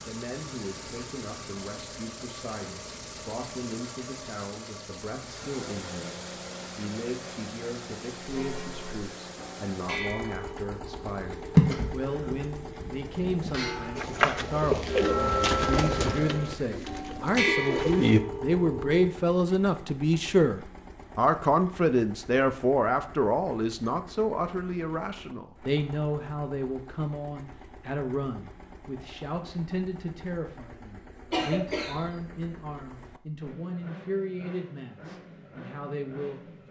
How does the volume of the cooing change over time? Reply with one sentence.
The loudness of the cooing goes down, then up.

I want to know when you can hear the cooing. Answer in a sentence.
The cooing can be heard from 13.9 to 18.2 s.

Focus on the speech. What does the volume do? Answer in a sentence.
The volume of the speech goes up, then down.